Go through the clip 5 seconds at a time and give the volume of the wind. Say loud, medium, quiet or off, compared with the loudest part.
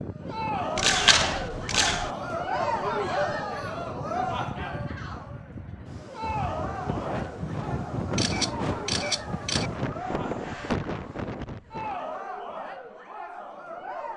medium, loud, loud.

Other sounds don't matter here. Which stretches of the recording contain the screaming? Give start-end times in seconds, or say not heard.
not heard.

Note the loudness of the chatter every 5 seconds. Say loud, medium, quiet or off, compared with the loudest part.
loud, medium, medium.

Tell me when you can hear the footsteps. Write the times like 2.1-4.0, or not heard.
not heard.